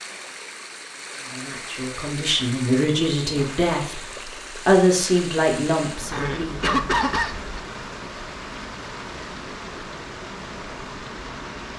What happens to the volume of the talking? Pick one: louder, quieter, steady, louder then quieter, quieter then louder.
louder then quieter.